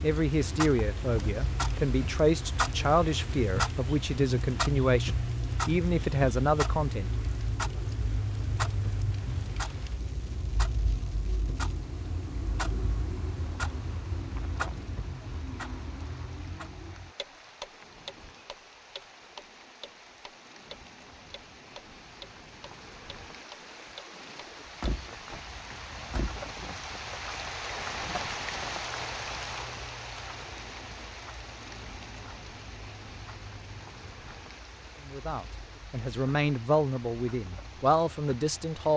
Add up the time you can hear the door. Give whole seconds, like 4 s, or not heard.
2 s.